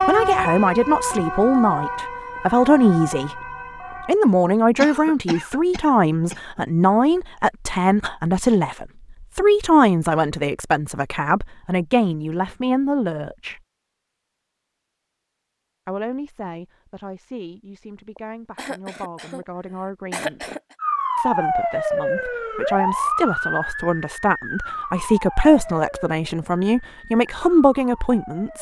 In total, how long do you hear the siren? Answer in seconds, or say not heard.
12 s.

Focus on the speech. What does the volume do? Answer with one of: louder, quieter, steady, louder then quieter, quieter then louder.
quieter then louder.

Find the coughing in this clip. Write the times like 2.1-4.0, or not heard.
4.8-6.7, 18.1-19.4, 20.1-20.8.